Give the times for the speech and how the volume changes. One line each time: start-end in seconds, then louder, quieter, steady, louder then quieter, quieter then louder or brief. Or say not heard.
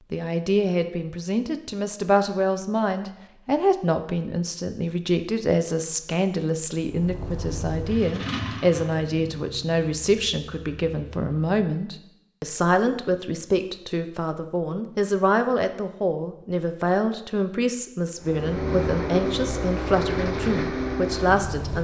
0.1-21.7 steady.